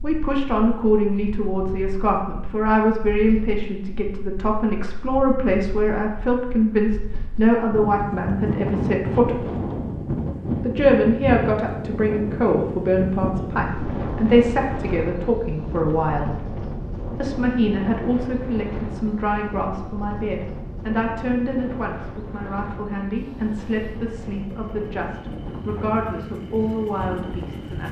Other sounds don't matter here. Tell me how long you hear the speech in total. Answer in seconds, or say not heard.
26 s.